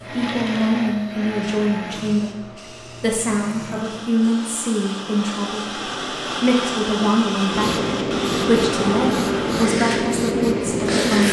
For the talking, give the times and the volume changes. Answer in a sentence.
You can hear the talking from 0.1 to 11.2 s, at a steady volume.